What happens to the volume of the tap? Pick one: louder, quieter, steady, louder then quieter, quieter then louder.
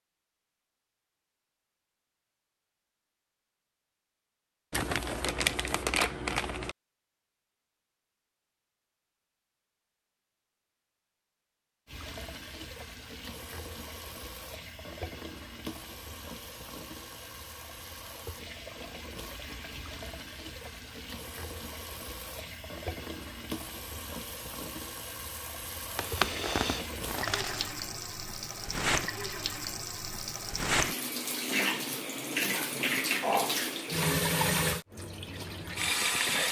louder.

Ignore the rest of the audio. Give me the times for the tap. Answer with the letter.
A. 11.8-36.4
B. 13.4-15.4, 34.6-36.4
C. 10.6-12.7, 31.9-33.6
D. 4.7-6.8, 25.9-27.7
A.